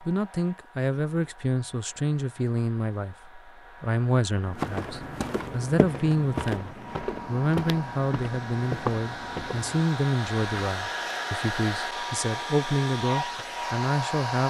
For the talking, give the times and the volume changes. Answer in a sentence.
You can hear the talking from 0.0 to 14.4 s, at a steady volume.